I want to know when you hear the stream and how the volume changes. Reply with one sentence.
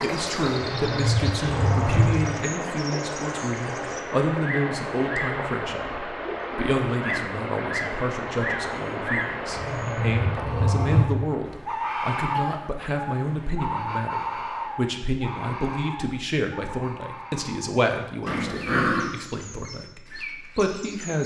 The stream can be heard from 0.0 to 14.9 s, getting quieter.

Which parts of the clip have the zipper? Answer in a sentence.
The zipper can't be heard in this clip.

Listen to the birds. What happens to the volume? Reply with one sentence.
The loudness of the birds goes up, then down.